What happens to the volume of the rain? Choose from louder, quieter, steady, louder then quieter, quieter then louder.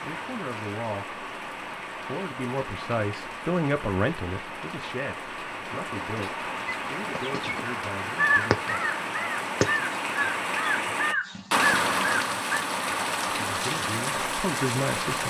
louder.